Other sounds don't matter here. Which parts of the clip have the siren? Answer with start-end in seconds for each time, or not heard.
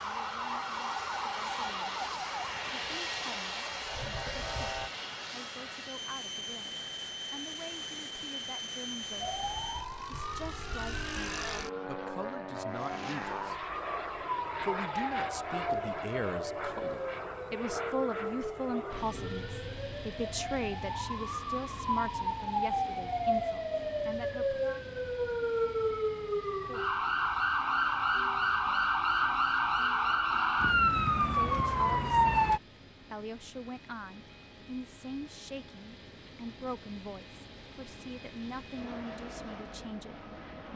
0.0-4.9, 9.2-32.6.